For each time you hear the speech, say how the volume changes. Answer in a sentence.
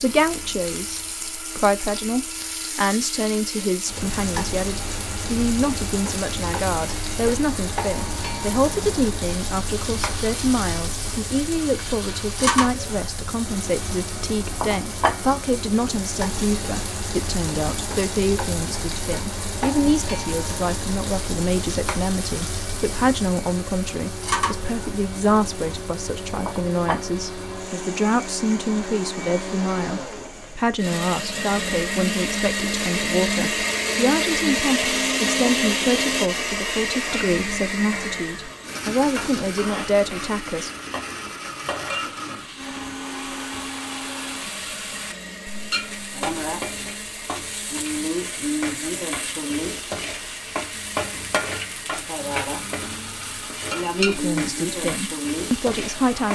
You can hear the speech from 0.0 to 40.7 s, at a steady volume; and briefly from 54.0 to 56.3 s.